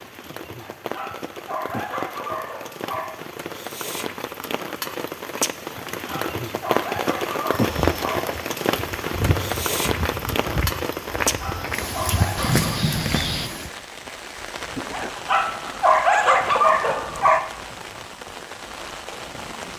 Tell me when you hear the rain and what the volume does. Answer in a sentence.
The rain can be heard from 0.0 to 19.7 s, getting louder then quieter.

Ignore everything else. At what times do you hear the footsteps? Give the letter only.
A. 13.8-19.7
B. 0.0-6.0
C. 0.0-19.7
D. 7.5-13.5
D.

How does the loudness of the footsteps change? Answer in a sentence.
The volume of the footsteps goes up.